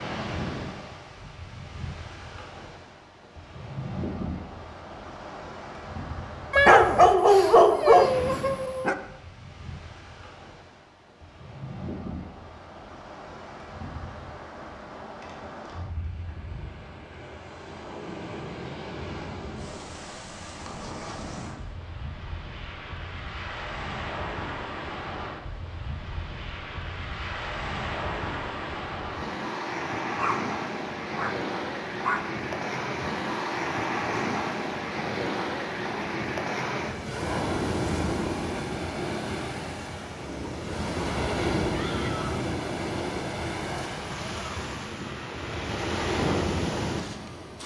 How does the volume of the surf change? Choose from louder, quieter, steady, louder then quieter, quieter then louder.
louder.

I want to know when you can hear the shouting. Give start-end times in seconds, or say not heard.
41.7-42.4.